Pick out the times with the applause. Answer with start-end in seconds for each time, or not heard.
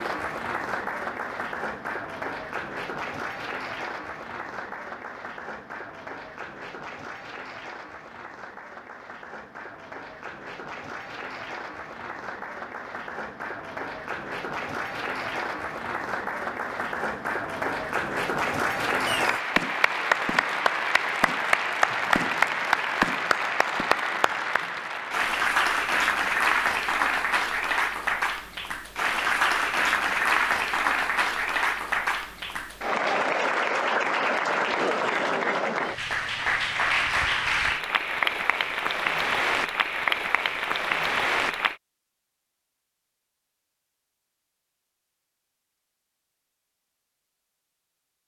0.0-41.8.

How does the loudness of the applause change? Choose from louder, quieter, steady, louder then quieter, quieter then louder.
louder.